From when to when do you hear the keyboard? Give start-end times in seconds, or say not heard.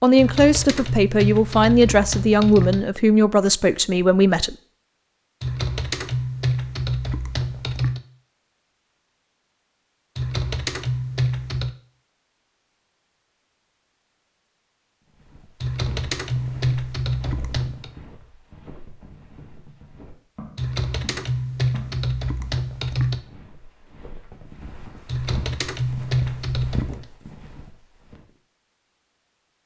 0.1-2.9, 5.4-8.0, 10.2-11.8, 15.6-17.9, 20.6-23.2, 25.1-27.0.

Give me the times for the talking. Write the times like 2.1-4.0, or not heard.
0.0-4.5.